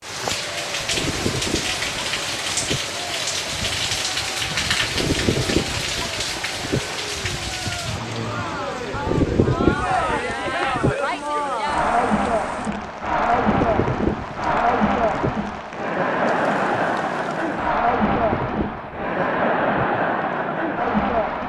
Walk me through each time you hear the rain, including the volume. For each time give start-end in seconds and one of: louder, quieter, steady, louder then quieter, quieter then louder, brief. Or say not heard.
0.0-17.8 quieter.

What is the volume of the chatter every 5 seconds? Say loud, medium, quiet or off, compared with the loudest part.
quiet, medium, loud, loud, loud.